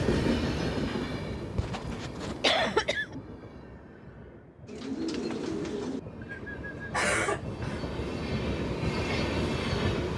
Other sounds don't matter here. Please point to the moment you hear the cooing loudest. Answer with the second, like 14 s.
5 s.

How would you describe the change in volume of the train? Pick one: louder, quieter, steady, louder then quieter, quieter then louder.
quieter then louder.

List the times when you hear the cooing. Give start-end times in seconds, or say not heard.
4.7-6.9.